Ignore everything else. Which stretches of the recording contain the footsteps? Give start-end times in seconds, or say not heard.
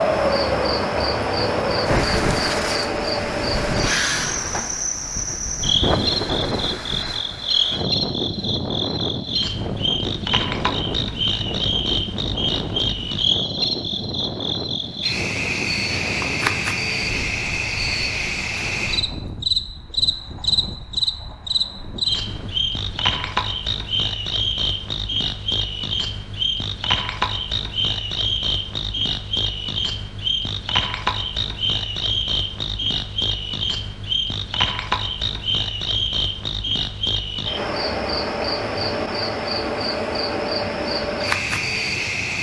not heard.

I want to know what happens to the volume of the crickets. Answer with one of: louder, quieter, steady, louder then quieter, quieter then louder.
steady.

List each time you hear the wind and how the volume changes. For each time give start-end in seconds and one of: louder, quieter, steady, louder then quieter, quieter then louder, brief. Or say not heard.
0.0-23.4 quieter.